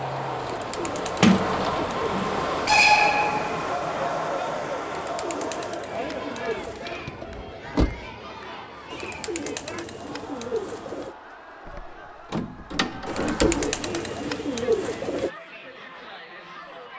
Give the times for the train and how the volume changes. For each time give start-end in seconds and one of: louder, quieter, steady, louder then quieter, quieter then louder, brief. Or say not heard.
0.0-5.8 louder then quieter.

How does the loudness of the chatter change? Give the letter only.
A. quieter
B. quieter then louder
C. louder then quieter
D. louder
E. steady
A.